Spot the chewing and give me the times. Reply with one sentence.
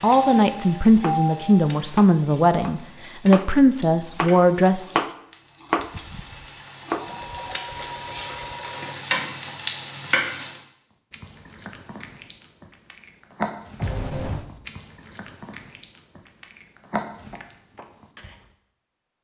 The chewing can be heard from 11.1 to 18.4 s.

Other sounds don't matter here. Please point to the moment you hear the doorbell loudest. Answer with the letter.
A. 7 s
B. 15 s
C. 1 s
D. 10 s
C.